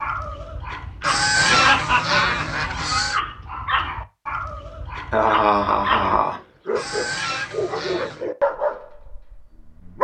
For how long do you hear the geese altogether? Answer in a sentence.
The geese can be heard for 4 seconds in total.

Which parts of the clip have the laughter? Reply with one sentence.
The laughter can be heard from 1.4 to 2.8 s and from 5.1 to 6.3 s.